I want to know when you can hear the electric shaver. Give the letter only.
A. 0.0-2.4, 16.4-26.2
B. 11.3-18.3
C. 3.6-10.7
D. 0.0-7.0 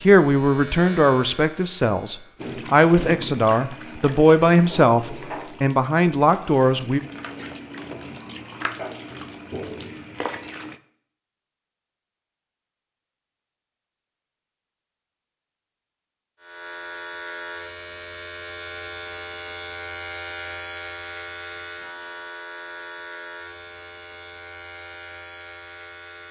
A.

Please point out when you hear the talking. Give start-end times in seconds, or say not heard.
0.0-7.0.